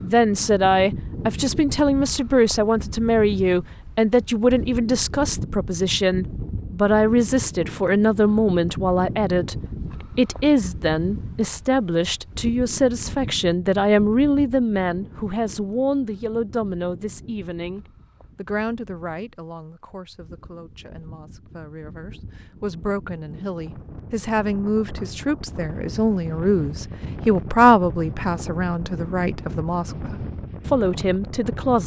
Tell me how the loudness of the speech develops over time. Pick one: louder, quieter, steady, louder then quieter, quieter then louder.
quieter then louder.